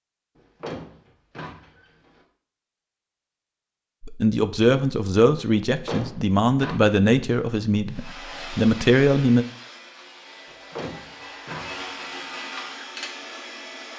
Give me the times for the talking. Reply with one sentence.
You can hear the talking from 4.0 to 9.4 s.